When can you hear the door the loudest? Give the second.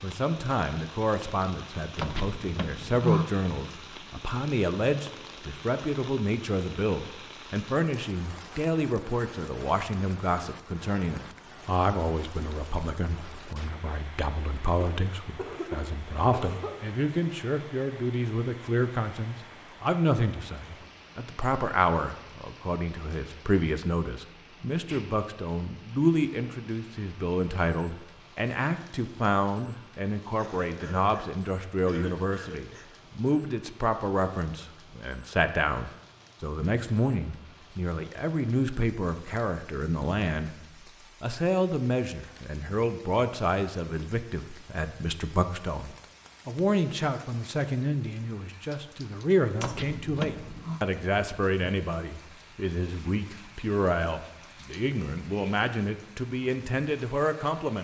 3 s.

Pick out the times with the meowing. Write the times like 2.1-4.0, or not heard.
not heard.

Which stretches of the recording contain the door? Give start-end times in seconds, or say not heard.
1.9-3.2, 49.6-50.8.